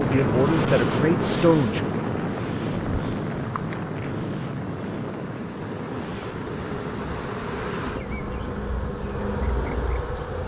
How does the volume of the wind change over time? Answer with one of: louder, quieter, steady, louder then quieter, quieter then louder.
quieter.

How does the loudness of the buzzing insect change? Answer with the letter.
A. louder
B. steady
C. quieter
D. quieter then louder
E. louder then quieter
D.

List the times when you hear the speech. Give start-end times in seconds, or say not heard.
0.0-2.0.